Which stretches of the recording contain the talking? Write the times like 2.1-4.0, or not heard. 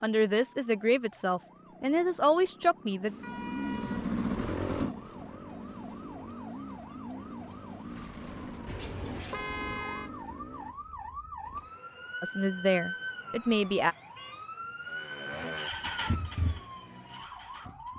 0.0-3.1, 12.2-13.9.